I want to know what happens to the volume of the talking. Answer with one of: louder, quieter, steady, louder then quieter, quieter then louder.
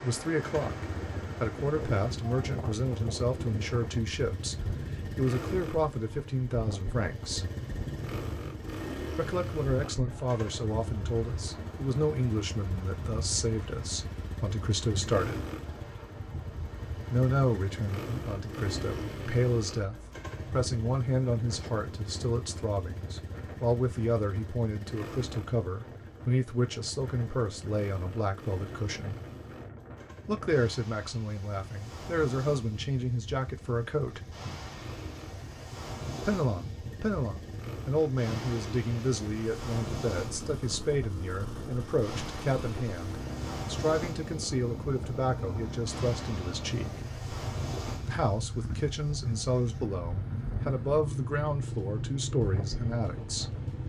steady.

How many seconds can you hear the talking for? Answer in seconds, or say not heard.
46 s.